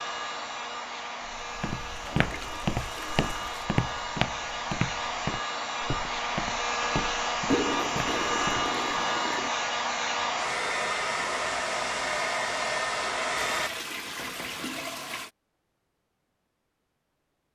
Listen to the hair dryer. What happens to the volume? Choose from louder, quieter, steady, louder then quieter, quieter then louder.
louder.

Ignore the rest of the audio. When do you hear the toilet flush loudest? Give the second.
8 s.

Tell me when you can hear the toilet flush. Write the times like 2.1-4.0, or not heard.
1.9-3.7, 7.5-9.5, 13.3-15.3.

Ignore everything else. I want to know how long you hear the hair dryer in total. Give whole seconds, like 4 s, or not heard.
14 s.